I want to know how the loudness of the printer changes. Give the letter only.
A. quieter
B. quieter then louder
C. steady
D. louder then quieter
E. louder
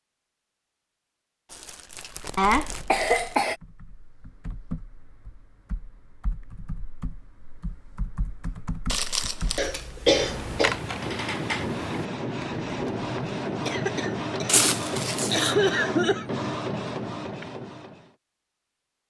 C.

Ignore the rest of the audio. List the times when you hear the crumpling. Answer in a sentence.
You can hear the crumpling from 1.5 to 3.4 s, from 8.8 to 9.6 s and from 14.4 to 15.6 s.